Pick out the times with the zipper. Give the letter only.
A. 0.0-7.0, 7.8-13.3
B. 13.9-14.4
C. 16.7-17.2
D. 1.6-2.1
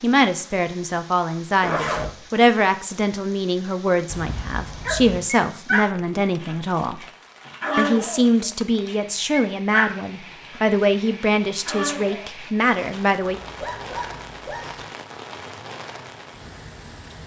D.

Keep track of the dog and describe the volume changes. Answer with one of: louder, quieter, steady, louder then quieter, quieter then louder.
louder then quieter.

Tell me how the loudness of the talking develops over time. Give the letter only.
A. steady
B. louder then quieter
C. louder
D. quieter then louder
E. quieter
A.